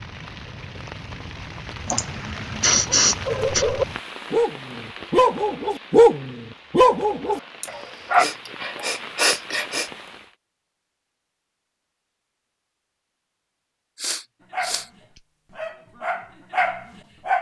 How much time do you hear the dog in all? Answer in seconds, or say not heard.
8 s.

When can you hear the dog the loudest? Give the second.
6 s.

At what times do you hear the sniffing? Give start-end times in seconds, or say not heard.
1.9-3.6, 7.6-9.9, 14.0-14.8.